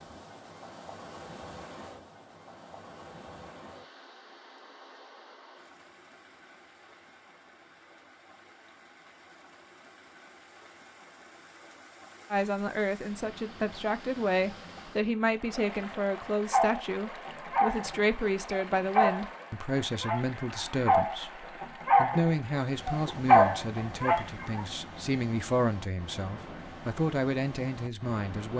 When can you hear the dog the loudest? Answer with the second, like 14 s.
23 s.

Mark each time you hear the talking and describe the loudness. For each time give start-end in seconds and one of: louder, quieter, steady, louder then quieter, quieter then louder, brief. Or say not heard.
12.3-28.5 steady.